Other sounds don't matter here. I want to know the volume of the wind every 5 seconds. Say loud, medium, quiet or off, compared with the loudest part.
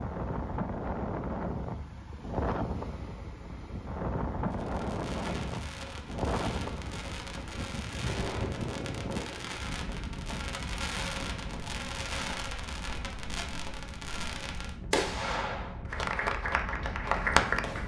loud, loud, medium, medium.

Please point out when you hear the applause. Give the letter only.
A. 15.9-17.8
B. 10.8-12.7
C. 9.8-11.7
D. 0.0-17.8
A.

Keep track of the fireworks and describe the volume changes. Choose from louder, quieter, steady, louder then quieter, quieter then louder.
louder.